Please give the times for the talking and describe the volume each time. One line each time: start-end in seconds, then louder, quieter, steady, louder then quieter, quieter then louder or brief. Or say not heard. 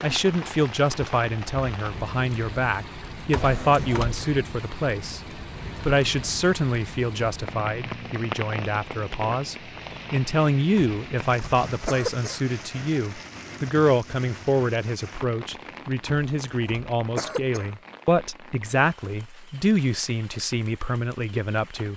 0.0-21.9 steady.